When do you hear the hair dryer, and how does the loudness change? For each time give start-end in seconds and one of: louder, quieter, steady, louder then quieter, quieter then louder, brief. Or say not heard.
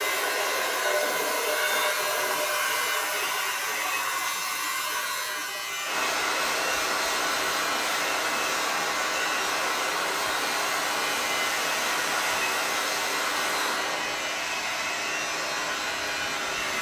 0.0-16.7 steady.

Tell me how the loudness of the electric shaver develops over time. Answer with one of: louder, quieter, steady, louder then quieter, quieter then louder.
steady.